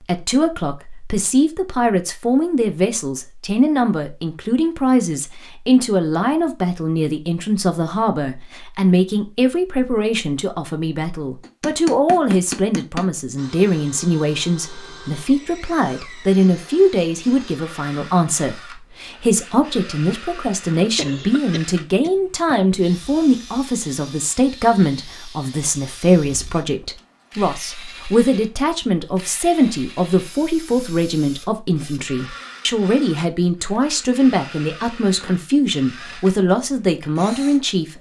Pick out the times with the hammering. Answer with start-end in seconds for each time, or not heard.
11.4-13.1.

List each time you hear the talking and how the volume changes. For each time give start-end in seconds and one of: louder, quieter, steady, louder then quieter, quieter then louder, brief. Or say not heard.
0.0-37.9 steady.